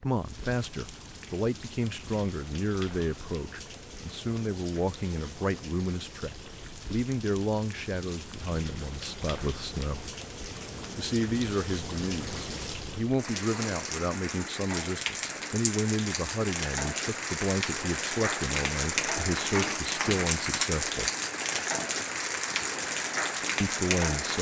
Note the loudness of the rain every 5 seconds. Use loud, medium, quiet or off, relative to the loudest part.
quiet, quiet, medium, loud, loud.